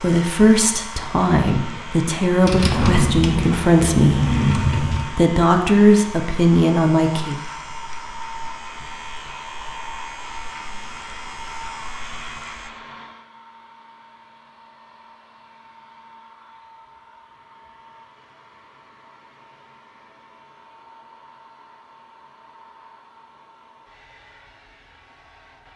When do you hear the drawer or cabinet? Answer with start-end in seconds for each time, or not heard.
2.4-5.2.